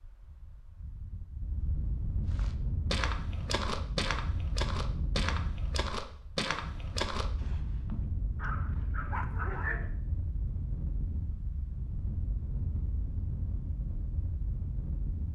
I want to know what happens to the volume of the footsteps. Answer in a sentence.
The loudness of the footsteps stays about the same.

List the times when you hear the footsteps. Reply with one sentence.
You can hear the footsteps from 2.3 to 8.1 s.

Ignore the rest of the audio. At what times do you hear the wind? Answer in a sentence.
You can hear the wind from 0.0 to 15.2 s.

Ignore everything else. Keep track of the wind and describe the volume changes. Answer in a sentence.
The loudness of the wind stays about the same.